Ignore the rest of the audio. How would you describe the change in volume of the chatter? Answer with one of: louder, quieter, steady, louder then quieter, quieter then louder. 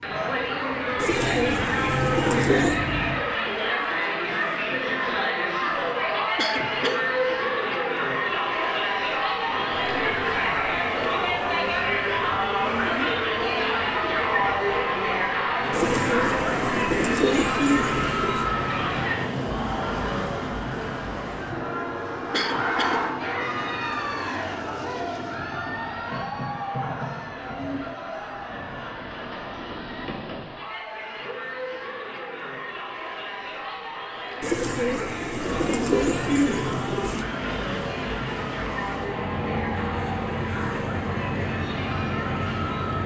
quieter.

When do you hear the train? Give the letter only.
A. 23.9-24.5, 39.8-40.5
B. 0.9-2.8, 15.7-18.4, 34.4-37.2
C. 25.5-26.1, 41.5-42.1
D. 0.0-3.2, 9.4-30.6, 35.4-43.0
D.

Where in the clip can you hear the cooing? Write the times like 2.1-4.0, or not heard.
0.9-2.8, 15.7-18.4, 34.4-37.2.